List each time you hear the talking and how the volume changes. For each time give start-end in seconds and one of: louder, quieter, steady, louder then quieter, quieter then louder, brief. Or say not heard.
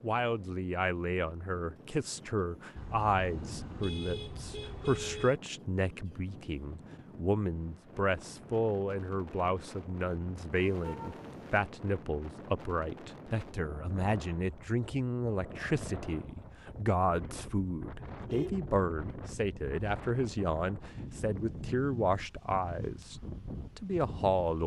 0.0-24.6 steady.